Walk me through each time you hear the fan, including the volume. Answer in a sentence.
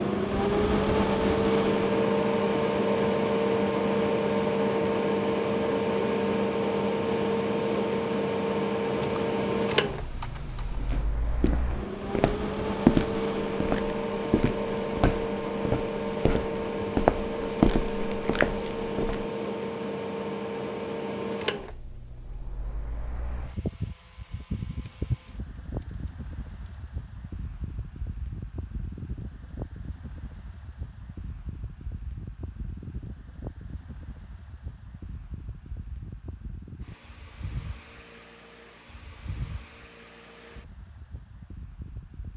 The fan can be heard from 0.0 to 42.3 s, getting quieter.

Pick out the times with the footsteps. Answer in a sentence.
The footsteps can be heard from 10.8 to 19.2 s.